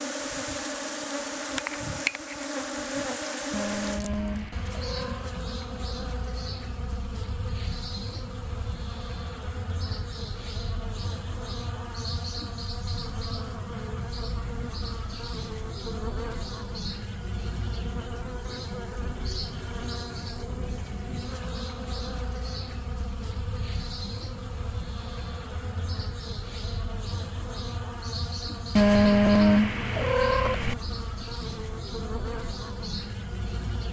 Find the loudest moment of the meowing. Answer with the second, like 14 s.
29 s.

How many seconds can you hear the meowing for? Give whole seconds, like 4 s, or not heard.
4 s.